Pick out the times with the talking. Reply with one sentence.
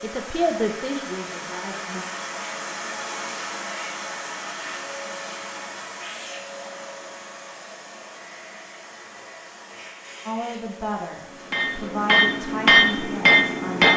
The talking can be heard from 0.0 to 2.0 s and from 10.2 to 13.9 s.